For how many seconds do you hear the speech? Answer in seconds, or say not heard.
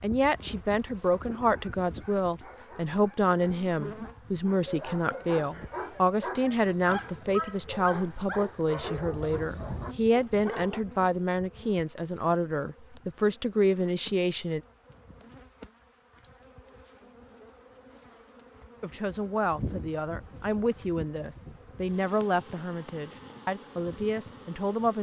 21 s.